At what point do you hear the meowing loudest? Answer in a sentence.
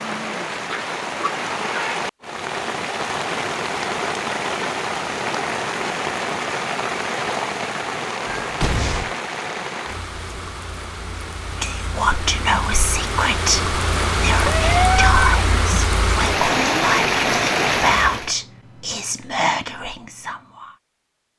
The loudest moment of the meowing is at 15 seconds.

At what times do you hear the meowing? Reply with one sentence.
The meowing can be heard from 0.7 to 2.0 s, from 8.2 to 9.1 s and from 14.4 to 15.2 s.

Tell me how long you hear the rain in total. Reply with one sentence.
The rain can be heard for 18 seconds in total.